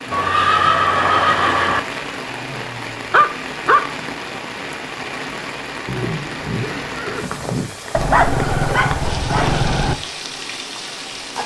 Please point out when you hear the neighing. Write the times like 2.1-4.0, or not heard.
0.1-1.8, 5.8-7.7.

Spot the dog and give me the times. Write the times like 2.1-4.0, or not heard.
2.3-3.8, 7.9-9.9.